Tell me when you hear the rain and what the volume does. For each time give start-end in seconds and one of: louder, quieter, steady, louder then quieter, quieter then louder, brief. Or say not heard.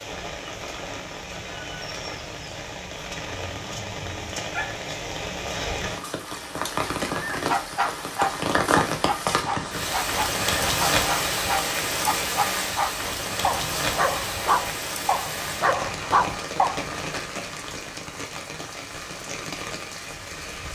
0.0-20.6 louder then quieter.